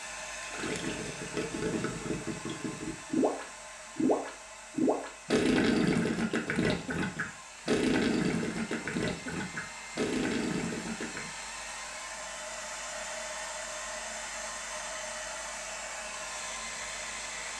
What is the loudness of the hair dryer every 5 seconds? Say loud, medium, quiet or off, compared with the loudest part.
medium, medium, loud, loud.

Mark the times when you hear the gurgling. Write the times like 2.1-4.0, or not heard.
0.4-11.2.